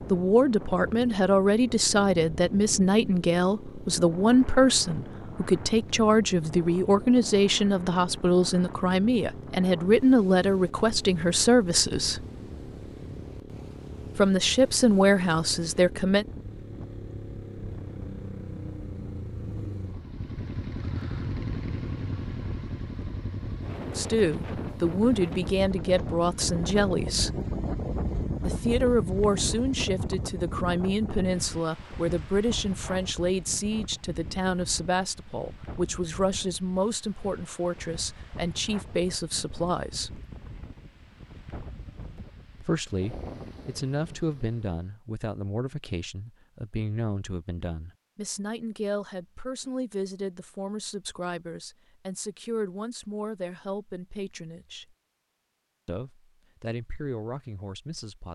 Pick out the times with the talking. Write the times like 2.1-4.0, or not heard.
0.1-12.2, 14.2-16.2, 23.9-27.4, 28.4-40.2, 42.6-54.9, 55.9-58.3.